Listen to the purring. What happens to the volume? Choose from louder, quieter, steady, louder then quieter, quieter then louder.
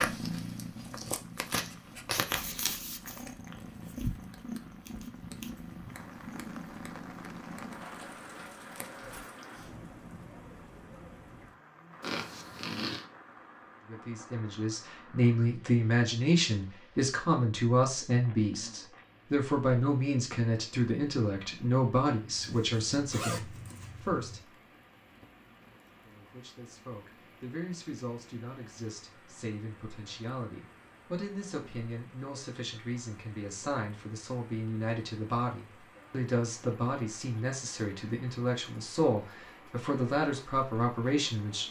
quieter.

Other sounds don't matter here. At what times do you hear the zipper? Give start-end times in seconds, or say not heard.
12.0-13.1, 22.4-24.4.